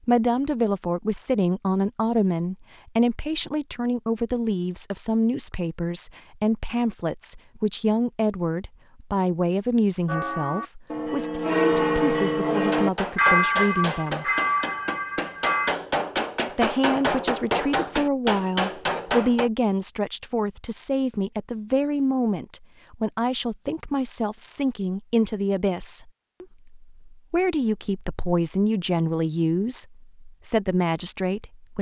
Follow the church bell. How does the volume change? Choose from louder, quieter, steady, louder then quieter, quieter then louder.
louder then quieter.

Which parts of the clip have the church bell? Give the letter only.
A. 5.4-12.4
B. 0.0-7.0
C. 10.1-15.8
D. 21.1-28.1
C.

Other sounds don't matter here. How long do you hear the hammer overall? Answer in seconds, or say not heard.
7 s.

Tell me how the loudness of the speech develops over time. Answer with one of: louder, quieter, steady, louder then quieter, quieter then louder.
steady.